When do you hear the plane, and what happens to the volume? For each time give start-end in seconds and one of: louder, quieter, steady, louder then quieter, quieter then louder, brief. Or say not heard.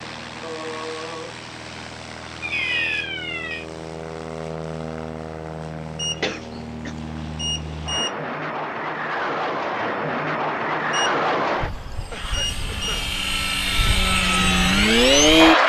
0.0-15.6 louder.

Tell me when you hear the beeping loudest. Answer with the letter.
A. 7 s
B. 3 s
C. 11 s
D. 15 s
B.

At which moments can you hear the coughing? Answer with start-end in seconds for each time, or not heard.
0.4-1.4, 6.2-7.0, 11.7-13.2.